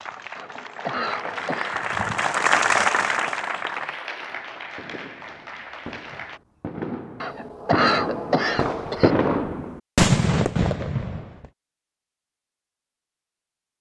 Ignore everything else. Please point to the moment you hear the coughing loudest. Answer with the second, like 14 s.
8 s.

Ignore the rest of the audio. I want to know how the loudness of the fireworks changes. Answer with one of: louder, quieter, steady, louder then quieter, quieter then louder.
louder.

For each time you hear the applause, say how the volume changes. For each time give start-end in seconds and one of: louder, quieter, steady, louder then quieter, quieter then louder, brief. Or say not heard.
0.0-6.4 louder then quieter.